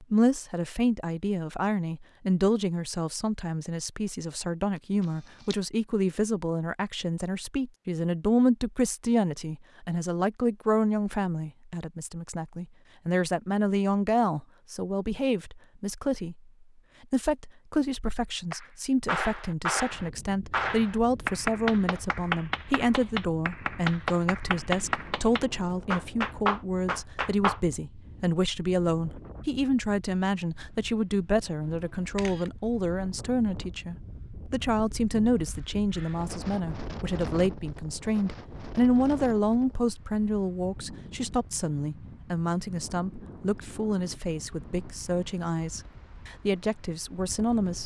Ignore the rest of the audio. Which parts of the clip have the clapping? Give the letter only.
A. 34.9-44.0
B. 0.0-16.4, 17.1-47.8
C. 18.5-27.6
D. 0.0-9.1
C.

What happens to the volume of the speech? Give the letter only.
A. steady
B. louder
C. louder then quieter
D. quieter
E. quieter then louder
A.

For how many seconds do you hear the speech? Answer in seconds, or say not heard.
47 s.